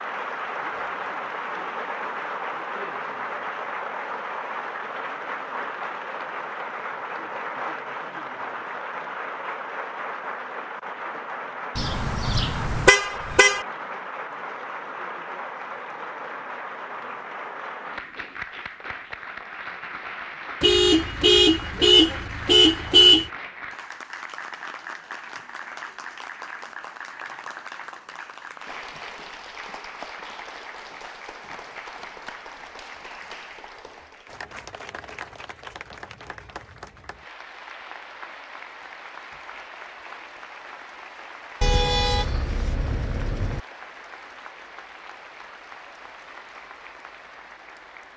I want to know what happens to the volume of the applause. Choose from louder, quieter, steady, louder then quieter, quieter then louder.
quieter.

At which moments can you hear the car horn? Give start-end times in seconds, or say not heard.
11.8-13.7, 20.6-23.3, 41.6-43.6.